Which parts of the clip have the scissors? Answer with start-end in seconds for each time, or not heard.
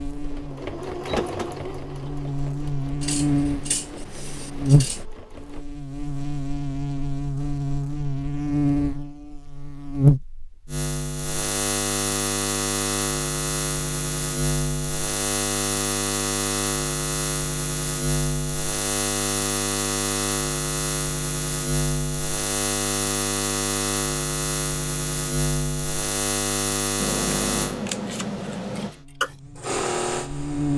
3.0-5.0, 27.0-28.9.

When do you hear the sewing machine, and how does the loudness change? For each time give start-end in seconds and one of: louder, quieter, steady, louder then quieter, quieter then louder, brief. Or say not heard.
0.1-5.7 quieter
28.8-30.7 brief.